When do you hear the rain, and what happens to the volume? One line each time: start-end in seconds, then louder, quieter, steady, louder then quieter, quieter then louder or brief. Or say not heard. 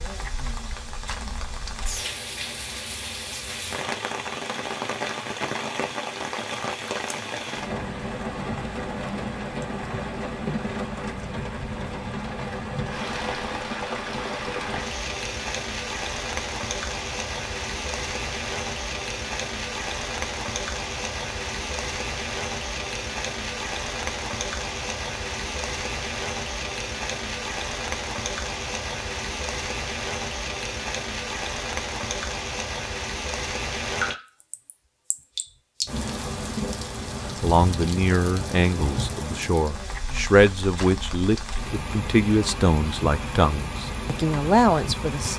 0.0-45.3 steady.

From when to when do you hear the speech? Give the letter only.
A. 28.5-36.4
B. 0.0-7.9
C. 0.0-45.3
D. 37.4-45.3
D.